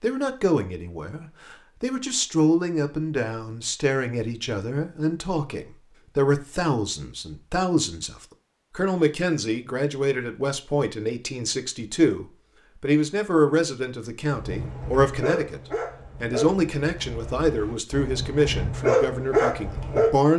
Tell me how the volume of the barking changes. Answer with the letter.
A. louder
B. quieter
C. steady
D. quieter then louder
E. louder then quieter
D.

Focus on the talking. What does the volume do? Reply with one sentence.
The volume of the talking stays about the same.